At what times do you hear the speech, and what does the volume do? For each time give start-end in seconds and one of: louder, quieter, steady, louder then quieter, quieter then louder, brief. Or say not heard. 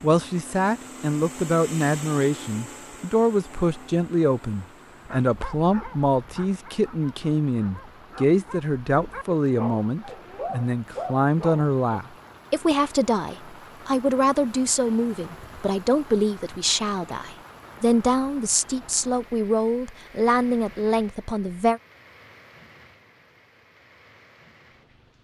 0.0-21.8 steady.